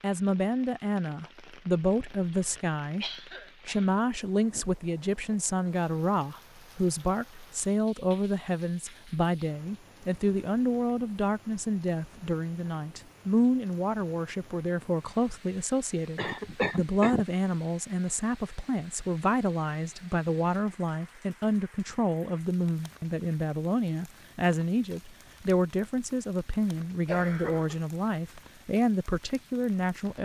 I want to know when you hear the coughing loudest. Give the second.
17 s.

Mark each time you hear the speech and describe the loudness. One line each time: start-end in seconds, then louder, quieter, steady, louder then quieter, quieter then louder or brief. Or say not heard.
0.0-30.2 steady.